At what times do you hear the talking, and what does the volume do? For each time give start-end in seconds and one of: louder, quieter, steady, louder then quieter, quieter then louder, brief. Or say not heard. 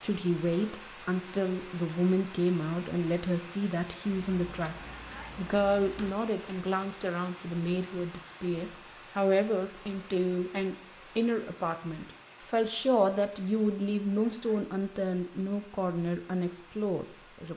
0.0-17.5 steady.